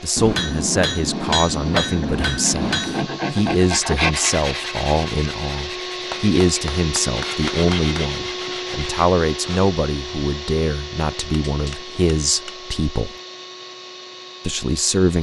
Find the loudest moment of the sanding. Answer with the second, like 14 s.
4 s.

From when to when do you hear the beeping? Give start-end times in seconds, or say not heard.
not heard.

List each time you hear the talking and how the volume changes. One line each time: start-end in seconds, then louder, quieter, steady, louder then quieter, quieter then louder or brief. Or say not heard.
0.0-13.2 steady
14.4-15.1 brief.